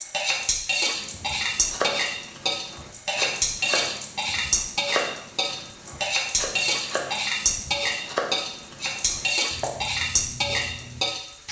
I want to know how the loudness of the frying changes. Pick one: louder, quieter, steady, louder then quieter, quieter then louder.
steady.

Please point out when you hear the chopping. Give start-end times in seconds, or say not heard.
0.9-11.1.